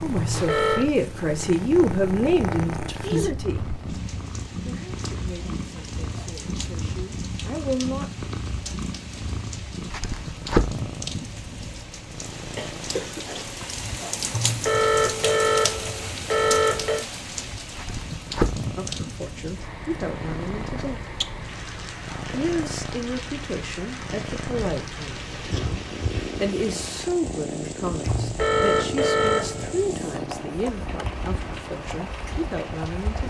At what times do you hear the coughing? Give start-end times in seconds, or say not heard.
12.6-13.4.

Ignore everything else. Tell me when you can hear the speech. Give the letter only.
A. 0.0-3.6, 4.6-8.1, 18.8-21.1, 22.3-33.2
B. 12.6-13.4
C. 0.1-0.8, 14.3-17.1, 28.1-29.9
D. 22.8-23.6
A.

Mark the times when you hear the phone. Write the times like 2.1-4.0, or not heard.
0.1-0.8, 14.3-17.1, 28.1-29.9.